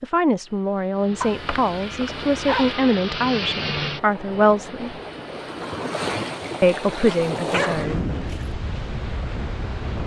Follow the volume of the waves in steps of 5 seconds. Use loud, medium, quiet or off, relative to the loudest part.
medium, loud.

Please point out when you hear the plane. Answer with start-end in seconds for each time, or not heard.
0.2-5.8.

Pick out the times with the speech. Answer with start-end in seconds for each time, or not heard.
0.0-5.0, 6.6-8.1.